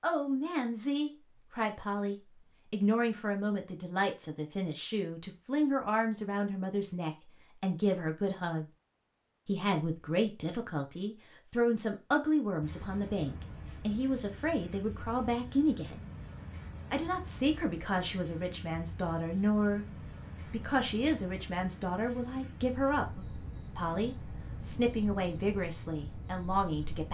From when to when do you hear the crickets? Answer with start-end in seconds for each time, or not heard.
12.6-27.0.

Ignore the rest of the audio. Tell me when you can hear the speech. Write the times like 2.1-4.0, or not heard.
0.0-8.7, 9.4-16.0, 16.9-19.9, 20.4-27.0.